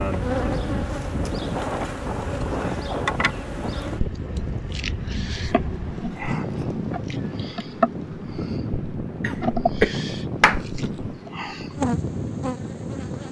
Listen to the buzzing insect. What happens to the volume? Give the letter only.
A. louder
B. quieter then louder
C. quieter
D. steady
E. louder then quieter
D.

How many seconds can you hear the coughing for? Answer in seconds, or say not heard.
2 s.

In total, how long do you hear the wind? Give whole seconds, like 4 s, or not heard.
13 s.